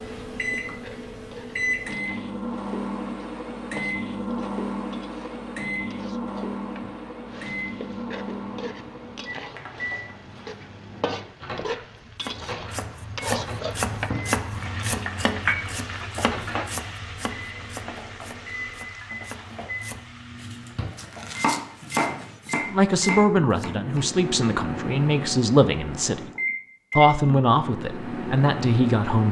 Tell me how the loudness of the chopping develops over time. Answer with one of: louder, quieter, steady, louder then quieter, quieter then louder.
quieter then louder.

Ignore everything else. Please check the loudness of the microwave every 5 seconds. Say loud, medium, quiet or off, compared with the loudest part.
loud, loud, medium, medium, loud, loud.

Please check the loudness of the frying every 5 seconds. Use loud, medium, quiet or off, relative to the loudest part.
medium, medium, loud, loud, quiet, off.